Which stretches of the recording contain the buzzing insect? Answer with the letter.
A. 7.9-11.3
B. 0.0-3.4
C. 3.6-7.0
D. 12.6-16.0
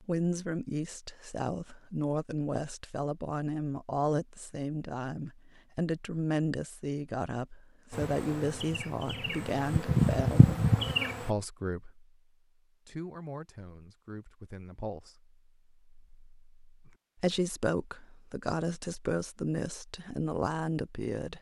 A.